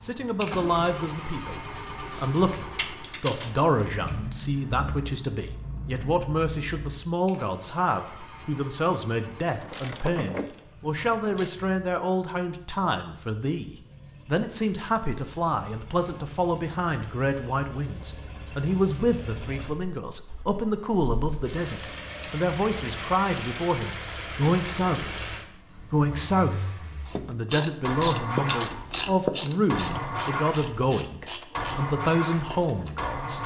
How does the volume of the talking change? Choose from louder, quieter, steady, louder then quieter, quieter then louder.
steady.